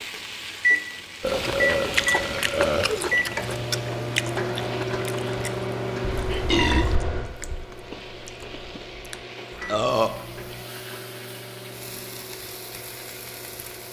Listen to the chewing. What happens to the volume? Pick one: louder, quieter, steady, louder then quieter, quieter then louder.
quieter.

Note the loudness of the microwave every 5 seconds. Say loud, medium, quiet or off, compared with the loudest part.
loud, medium, quiet.